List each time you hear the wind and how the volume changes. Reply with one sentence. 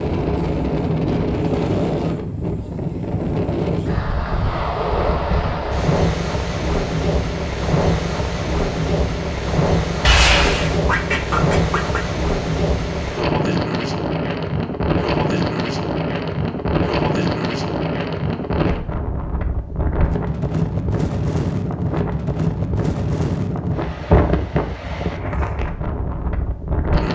You can hear the wind from 0.0 to 27.1 s, at a steady volume.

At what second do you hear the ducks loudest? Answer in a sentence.
The loudest moment of the ducks is at 10 seconds.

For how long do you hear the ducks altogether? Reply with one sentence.
The ducks can be heard for 2 seconds in total.